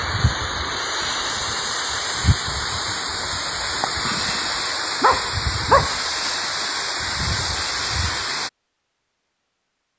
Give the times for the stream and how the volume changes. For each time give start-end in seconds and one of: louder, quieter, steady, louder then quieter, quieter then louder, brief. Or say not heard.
0.0-8.5 steady.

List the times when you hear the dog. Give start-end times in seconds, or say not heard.
5.0-6.0.